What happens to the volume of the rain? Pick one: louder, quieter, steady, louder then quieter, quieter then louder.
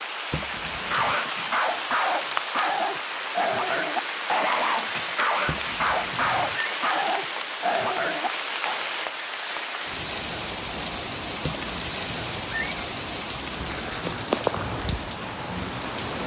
steady.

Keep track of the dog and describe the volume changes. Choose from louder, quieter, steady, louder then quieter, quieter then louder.
steady.